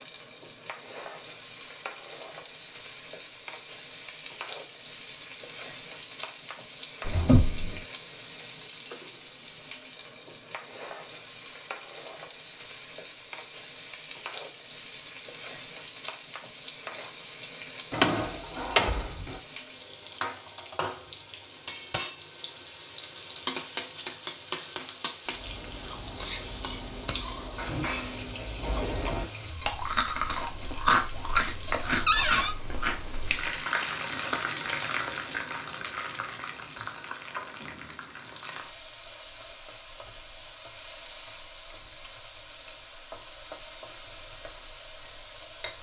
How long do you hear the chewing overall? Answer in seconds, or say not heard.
8 s.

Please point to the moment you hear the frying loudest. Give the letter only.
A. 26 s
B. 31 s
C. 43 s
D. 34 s
D.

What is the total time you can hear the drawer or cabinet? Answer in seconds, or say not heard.
3 s.